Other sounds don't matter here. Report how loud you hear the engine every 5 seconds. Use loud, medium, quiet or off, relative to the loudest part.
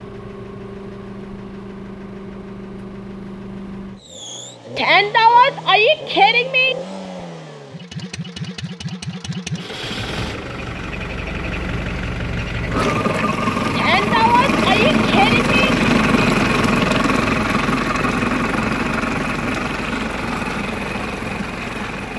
quiet, quiet, loud, loud, medium.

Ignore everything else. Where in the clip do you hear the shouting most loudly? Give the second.
5 s.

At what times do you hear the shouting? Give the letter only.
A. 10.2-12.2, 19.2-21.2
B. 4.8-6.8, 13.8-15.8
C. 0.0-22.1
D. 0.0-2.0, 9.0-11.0
B.